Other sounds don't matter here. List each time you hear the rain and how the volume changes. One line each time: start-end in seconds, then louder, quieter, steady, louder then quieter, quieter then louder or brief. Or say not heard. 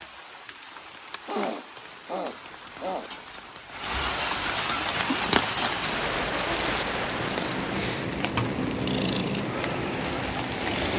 0.0-10.9 louder then quieter.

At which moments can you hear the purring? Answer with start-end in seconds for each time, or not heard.
4.7-10.9.